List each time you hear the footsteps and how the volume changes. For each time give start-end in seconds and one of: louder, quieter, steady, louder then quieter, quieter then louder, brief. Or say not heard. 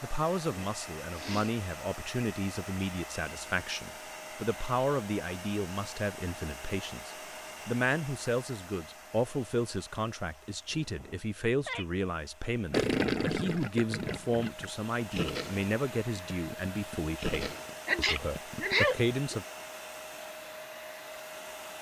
not heard.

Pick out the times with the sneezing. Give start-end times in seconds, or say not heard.
0.5-1.6, 10.8-11.8, 17.9-18.9.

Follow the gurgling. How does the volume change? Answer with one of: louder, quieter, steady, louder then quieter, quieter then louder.
quieter.